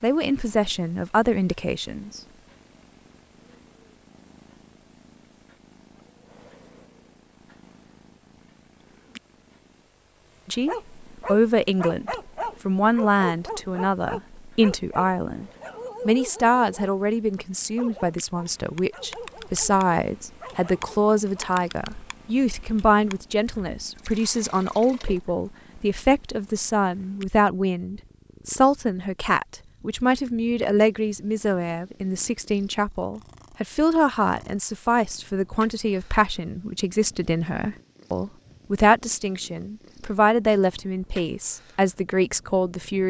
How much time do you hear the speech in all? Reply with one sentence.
The speech can be heard for 34 seconds in total.